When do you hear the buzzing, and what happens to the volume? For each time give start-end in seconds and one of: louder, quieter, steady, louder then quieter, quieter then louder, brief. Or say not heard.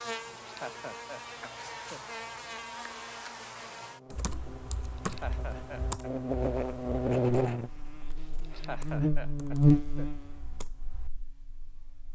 0.0-12.0 louder.